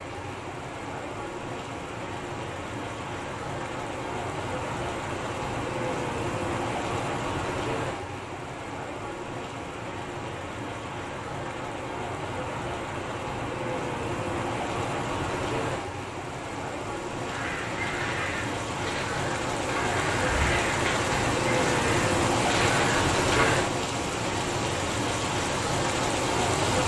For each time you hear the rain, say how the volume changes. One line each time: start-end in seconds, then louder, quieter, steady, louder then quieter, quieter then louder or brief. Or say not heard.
0.0-26.8 louder.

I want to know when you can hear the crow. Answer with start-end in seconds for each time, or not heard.
17.2-23.6.